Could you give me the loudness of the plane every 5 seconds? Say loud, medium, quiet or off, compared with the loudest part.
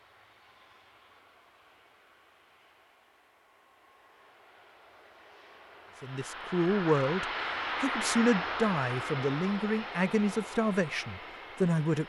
quiet, loud, medium.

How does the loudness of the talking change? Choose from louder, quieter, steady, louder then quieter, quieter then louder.
steady.